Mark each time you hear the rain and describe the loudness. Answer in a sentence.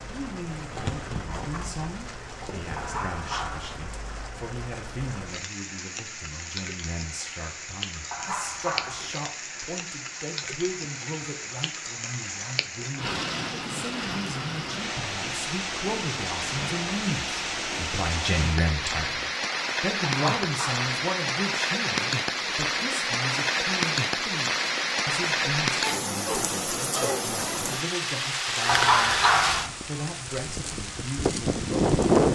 You can hear the rain from 0.0 to 32.3 s, getting louder.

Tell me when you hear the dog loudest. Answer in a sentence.
The loudest moment of the dog is at 29 seconds.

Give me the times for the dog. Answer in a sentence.
The dog can be heard from 2.8 to 3.8 s, from 8.1 to 9.2 s, from 20.2 to 20.9 s and from 28.6 to 29.7 s.